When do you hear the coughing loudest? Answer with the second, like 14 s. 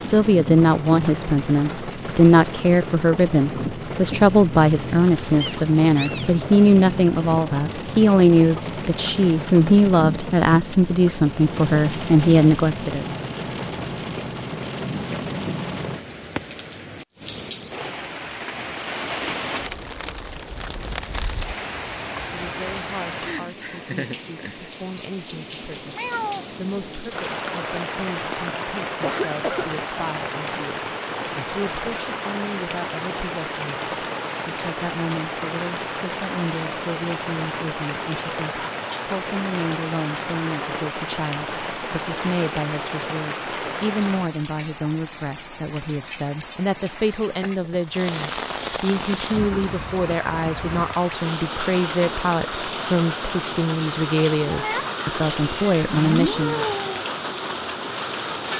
29 s.